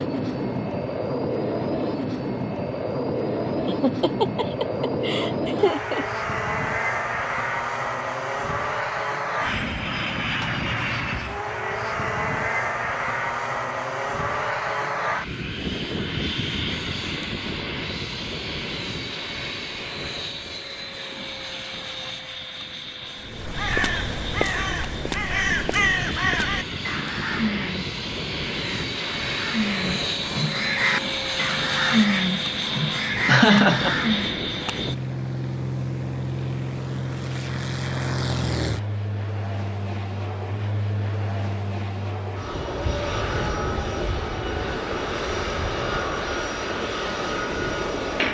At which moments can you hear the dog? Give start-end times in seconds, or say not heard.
not heard.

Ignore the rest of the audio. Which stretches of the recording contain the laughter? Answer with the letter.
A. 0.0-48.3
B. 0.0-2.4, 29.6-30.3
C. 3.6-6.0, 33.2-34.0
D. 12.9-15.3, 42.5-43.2
C.